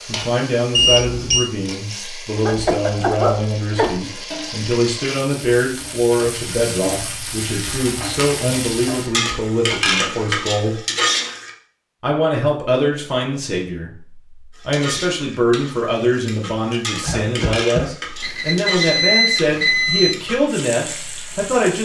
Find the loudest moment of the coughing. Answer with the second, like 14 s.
3 s.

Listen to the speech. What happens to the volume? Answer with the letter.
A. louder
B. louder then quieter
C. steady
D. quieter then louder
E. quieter
C.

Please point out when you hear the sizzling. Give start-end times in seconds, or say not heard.
0.0-11.5, 14.6-21.8.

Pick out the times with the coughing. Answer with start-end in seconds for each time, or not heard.
2.4-4.0, 17.0-17.9.